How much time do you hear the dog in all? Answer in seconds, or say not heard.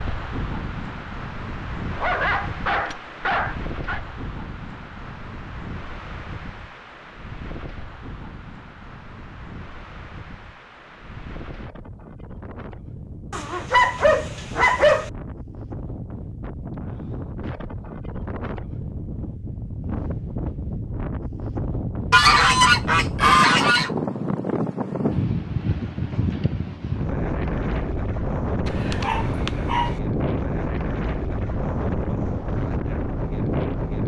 5 s.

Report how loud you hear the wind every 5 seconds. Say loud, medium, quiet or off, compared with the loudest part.
medium, quiet, quiet, medium, loud, loud, loud.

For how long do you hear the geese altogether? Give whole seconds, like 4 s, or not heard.
2 s.